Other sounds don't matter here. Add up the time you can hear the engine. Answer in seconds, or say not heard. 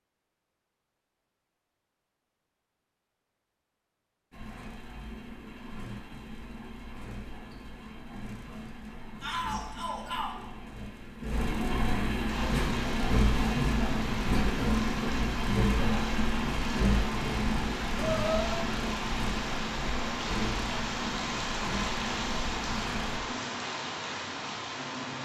19 s.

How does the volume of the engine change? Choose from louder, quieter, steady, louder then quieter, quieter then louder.
louder then quieter.